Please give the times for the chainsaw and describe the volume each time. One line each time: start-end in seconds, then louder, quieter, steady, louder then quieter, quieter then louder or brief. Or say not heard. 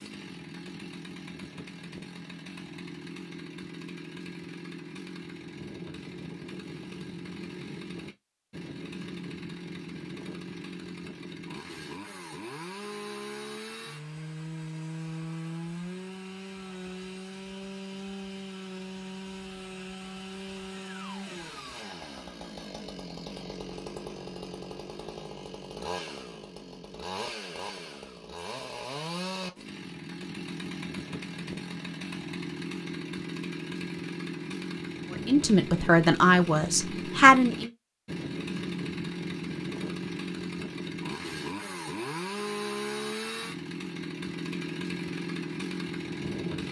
0.0-46.6 louder.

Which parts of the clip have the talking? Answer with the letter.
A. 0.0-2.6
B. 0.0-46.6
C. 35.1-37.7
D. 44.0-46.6
C.